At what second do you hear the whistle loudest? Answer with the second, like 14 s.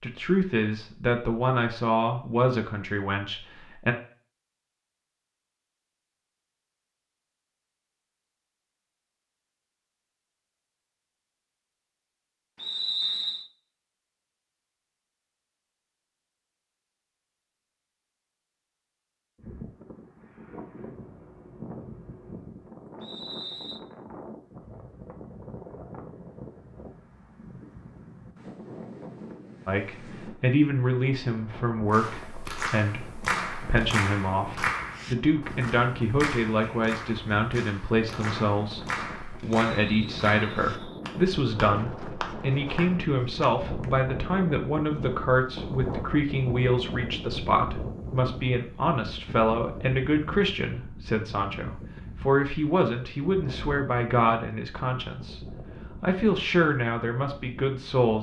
13 s.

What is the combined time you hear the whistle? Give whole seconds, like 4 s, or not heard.
3 s.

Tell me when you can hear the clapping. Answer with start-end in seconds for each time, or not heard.
31.9-43.9.